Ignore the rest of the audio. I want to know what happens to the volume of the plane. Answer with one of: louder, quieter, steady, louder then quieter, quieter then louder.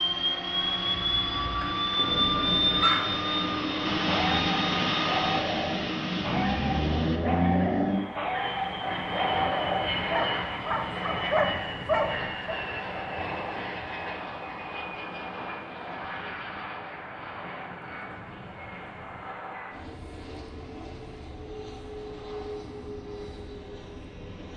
quieter.